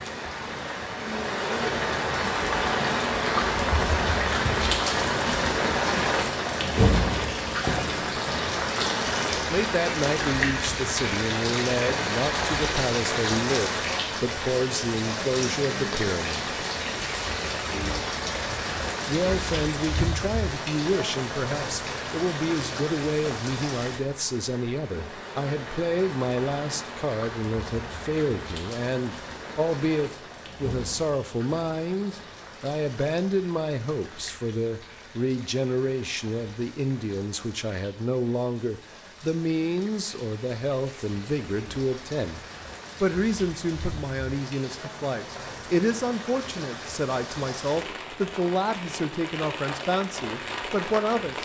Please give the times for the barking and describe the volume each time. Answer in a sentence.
The barking can't be heard in this clip.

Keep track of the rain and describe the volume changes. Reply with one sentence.
The volume of the rain goes down, then up.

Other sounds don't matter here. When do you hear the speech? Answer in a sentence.
You can hear the speech from 9.5 to 16.5 s, from 19.1 to 42.4 s and from 43.0 to 51.3 s.